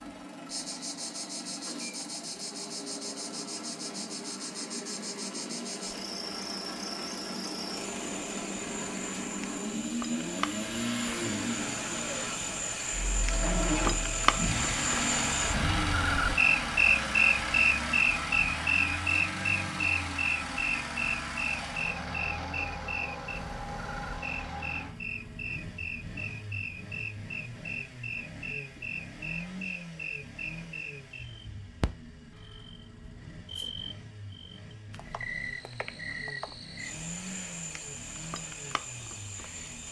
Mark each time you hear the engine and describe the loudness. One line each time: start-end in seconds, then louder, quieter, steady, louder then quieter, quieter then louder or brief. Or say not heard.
0.0-39.8 louder then quieter.